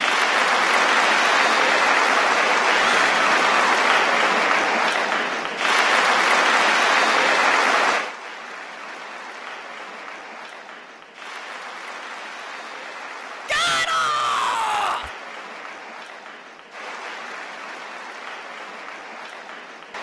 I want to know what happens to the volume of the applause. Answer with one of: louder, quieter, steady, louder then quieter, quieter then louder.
quieter.